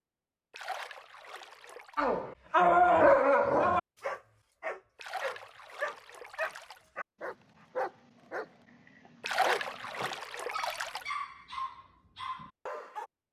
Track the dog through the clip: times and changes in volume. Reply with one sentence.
You can hear the dog from 1.9 to 13.1 s, getting quieter.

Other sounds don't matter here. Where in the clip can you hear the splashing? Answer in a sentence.
You can hear the splashing from 0.5 to 2.0 s, from 5.0 to 6.8 s and from 9.2 to 11.1 s.